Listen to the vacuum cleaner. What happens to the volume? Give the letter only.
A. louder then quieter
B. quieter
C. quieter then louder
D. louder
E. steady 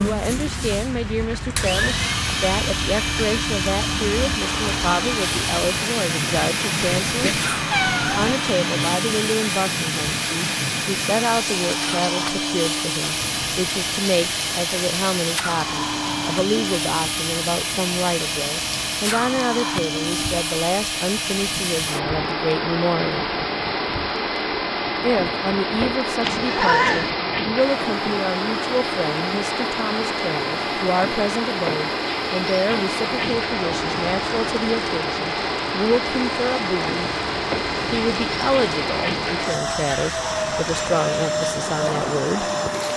E.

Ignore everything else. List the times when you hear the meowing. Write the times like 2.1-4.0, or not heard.
7.0-8.2, 26.2-27.1.